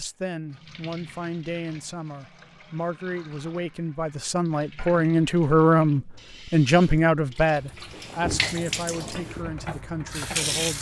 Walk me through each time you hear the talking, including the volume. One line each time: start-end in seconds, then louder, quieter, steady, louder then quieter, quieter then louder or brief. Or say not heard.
0.0-10.7 louder then quieter.